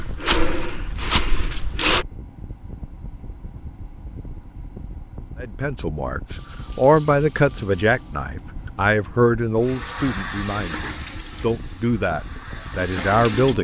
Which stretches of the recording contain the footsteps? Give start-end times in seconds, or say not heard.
0.0-2.0.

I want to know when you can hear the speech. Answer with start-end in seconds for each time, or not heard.
5.4-13.5.